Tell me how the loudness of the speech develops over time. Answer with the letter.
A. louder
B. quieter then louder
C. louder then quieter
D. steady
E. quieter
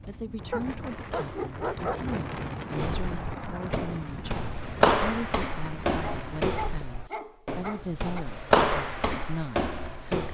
D.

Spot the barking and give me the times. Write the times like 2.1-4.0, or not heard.
0.5-2.1, 6.0-8.2.